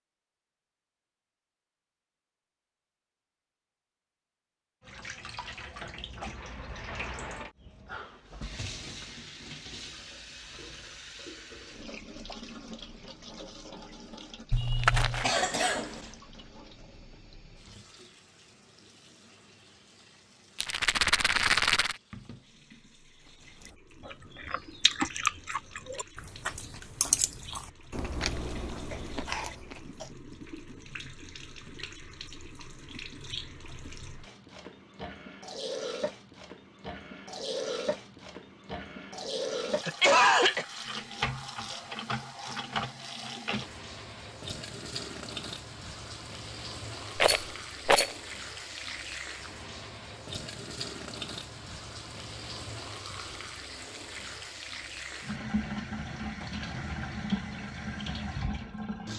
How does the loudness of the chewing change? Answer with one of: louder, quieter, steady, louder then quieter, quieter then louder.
quieter.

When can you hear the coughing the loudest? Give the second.
40 s.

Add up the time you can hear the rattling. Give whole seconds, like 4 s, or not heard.
3 s.